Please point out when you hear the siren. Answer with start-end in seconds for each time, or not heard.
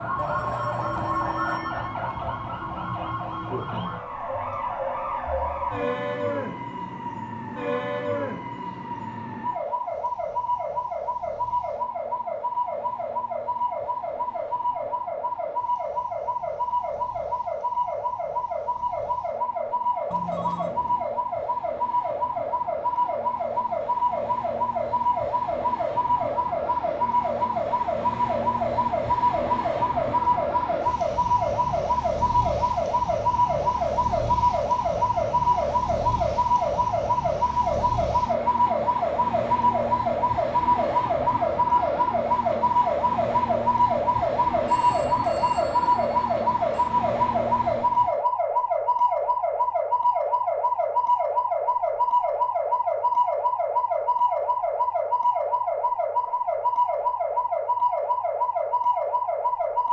0.0-59.8.